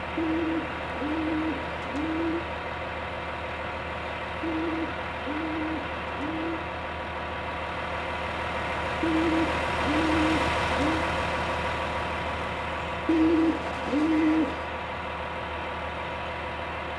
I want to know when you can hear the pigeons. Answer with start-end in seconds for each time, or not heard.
0.1-2.5, 4.4-6.7, 9.0-11.1, 13.1-14.7.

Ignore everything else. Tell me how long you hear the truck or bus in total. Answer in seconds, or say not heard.
17 s.